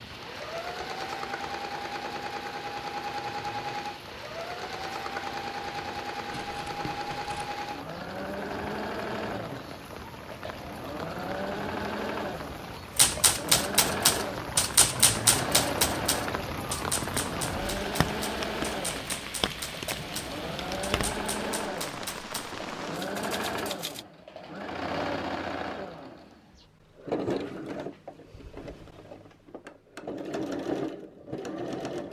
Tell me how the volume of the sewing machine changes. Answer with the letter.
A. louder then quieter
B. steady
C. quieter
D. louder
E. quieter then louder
B.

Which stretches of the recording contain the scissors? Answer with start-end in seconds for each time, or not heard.
6.3-7.5.